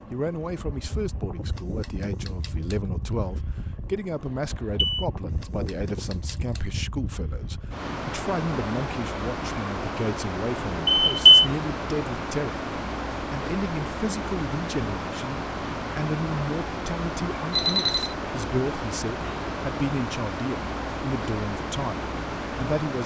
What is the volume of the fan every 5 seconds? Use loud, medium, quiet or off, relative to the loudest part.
medium, loud, loud, loud, loud.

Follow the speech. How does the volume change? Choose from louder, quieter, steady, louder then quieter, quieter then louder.
steady.